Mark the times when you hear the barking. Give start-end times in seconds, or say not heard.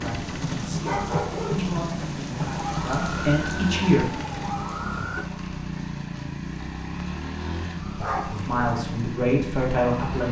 0.8-1.8, 8.0-8.5.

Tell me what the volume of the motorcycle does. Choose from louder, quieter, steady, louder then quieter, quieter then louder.
steady.